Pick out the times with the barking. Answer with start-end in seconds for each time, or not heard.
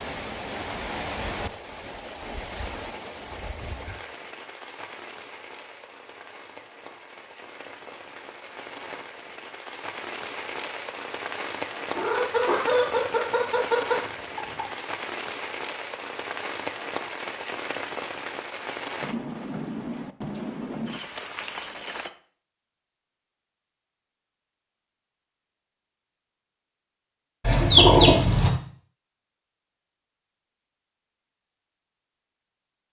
not heard.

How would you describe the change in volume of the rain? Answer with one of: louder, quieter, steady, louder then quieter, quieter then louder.
quieter then louder.